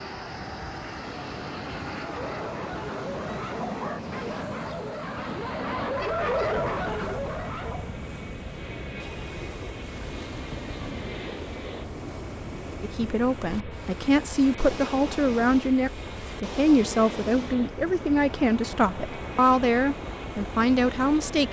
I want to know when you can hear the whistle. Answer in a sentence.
The whistle can't be heard in this clip.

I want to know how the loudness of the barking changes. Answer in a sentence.
The volume of the barking goes up.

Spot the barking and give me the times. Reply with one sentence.
The barking can be heard from 1.9 to 7.9 s.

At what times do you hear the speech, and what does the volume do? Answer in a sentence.
The speech can be heard from 12.8 to 21.4 s, at a steady volume.